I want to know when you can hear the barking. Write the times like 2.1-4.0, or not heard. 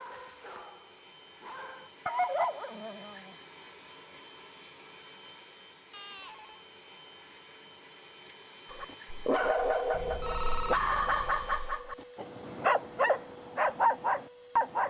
0.0-3.4, 8.7-14.8.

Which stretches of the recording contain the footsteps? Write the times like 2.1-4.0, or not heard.
not heard.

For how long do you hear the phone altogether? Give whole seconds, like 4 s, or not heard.
3 s.